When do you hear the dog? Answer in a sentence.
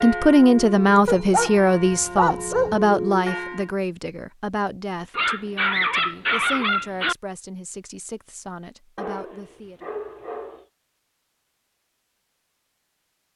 You can hear the dog from 1.1 to 2.8 s, from 5.1 to 7.2 s and from 8.9 to 10.7 s.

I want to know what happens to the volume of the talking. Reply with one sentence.
The loudness of the talking goes down.